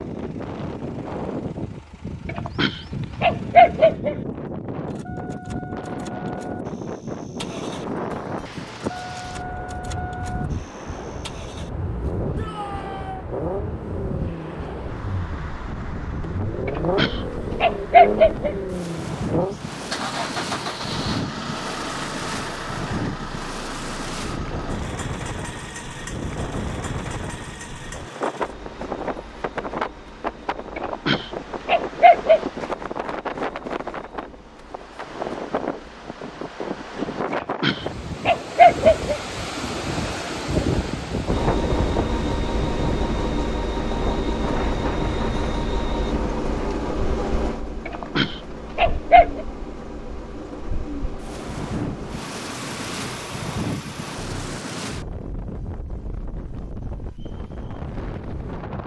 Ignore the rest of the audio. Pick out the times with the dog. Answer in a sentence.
You can hear the dog from 2.2 to 4.2 s, from 16.6 to 18.6 s, from 30.8 to 32.4 s, from 37.3 to 39.2 s and from 47.9 to 49.4 s.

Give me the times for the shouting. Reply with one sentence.
The shouting can be heard from 12.3 to 13.2 s.